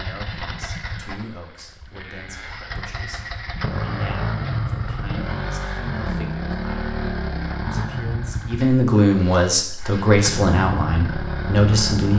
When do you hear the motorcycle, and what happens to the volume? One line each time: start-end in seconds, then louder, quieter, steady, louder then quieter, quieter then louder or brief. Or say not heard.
0.0-12.1 louder.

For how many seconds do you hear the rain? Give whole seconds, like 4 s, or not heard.
not heard.